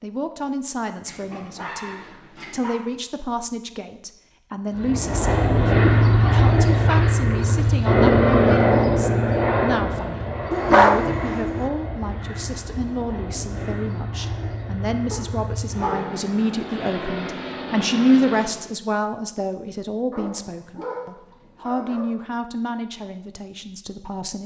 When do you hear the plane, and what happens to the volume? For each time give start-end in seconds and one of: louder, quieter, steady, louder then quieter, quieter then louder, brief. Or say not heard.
4.8-18.7 quieter.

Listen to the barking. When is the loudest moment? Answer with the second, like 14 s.
11 s.